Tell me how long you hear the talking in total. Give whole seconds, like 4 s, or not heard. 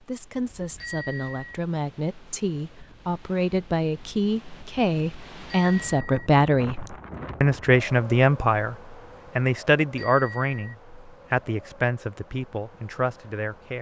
14 s.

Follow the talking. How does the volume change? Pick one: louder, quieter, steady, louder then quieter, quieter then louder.
louder then quieter.